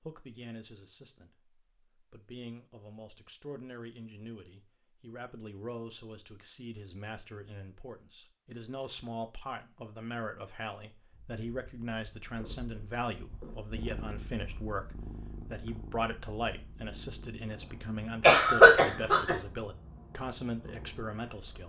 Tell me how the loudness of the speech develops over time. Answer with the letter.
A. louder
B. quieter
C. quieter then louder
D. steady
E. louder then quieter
A.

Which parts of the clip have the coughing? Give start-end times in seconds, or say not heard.
18.2-19.4.